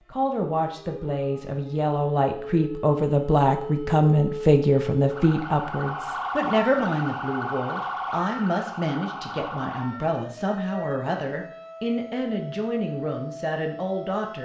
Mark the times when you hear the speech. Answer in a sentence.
You can hear the speech from 0.1 to 14.3 s.